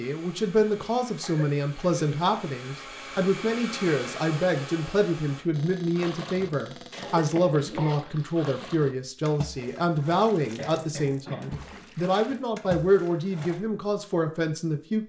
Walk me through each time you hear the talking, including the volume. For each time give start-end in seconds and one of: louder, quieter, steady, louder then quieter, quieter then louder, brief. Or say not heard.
0.0-15.0 steady.